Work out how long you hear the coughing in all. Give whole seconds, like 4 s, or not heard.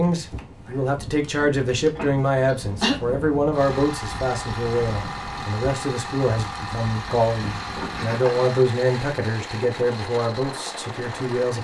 3 s.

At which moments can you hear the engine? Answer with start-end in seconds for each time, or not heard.
3.5-11.5.